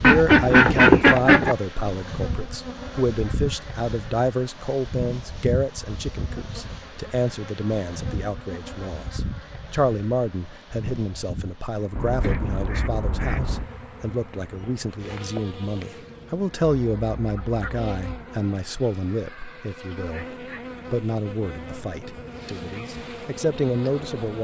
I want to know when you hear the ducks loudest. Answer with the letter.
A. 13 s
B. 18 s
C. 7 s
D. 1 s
D.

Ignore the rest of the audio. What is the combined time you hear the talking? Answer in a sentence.
You can hear the talking for 24 seconds altogether.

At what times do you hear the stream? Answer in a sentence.
The stream can't be heard in this clip.